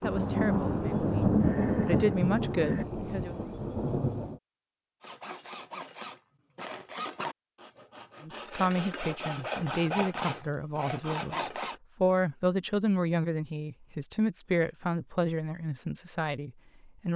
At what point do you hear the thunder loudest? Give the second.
1 s.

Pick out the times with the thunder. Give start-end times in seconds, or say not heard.
0.0-4.4.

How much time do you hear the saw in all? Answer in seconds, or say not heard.
7 s.